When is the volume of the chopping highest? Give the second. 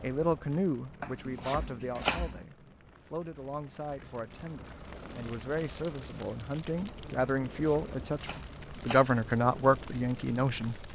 2 s.